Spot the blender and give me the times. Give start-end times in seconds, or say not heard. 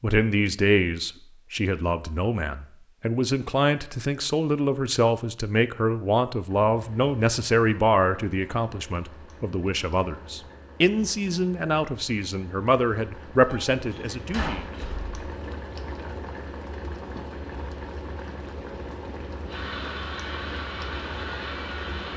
19.4-22.1.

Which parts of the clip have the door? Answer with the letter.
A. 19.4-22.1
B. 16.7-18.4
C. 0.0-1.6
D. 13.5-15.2
D.